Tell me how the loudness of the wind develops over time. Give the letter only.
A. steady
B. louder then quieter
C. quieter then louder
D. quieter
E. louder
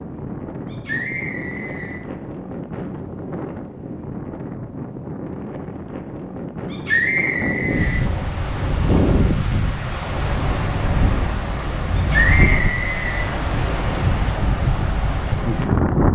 E.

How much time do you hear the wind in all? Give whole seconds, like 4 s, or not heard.
16 s.